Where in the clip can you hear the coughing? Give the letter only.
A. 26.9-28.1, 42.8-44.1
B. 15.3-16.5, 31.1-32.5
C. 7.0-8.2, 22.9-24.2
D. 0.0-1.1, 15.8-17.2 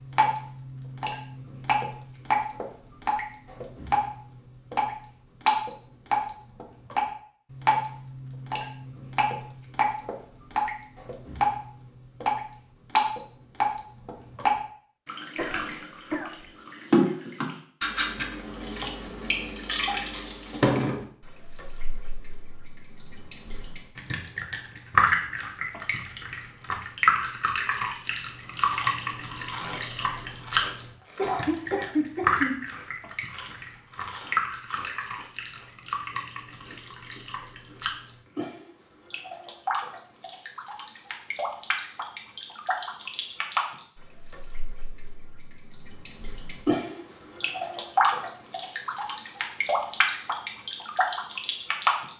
B.